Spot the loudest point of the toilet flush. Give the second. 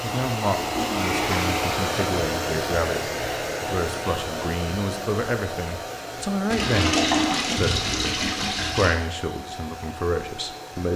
7 s.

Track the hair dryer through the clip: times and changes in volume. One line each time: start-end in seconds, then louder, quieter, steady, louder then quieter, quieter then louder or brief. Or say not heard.
0.0-10.9 quieter.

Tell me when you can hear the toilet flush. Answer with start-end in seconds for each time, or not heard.
0.6-2.0, 6.5-8.9.